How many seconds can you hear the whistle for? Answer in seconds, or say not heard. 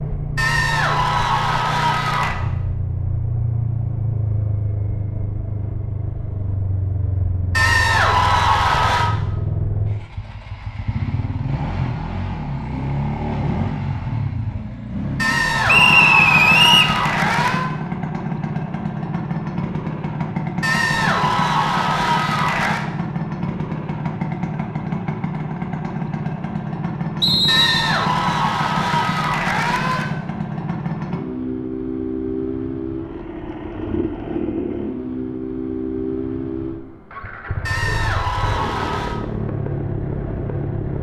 2 s.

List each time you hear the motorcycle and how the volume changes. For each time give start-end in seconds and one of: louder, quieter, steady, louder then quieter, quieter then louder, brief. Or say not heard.
0.0-40.9 steady.